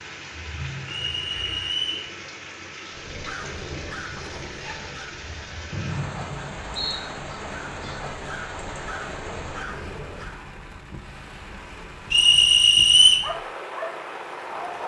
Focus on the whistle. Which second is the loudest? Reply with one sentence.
The loudest moment of the whistle is at 13 seconds.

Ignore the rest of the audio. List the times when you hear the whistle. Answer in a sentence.
You can hear the whistle from 1.0 to 2.0 s, from 5.7 to 7.0 s and from 12.1 to 13.2 s.